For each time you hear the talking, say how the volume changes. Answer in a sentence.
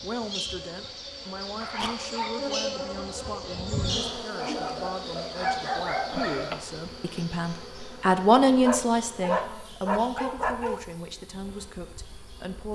The talking can be heard from 0.0 to 12.6 s, getting louder then quieter.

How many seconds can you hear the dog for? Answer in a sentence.
You can hear the dog for 5 seconds altogether.